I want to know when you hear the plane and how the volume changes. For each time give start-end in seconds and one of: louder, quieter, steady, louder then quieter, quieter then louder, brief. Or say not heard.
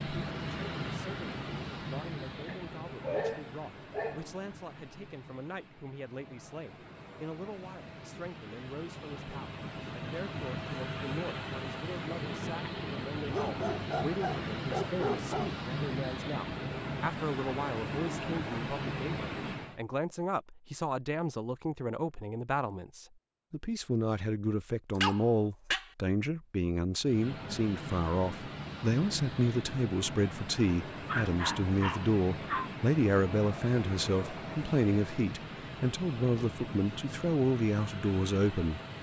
0.0-19.8 quieter then louder
27.0-38.9 steady.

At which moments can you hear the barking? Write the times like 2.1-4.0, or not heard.
2.5-4.3, 13.3-15.6, 24.9-25.9, 31.1-32.7.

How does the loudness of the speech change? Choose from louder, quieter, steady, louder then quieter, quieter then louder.
louder.